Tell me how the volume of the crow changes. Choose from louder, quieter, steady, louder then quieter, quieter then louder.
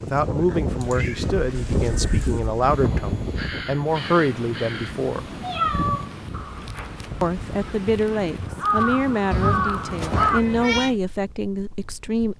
quieter then louder.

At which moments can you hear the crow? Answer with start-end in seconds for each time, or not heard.
1.5-10.4.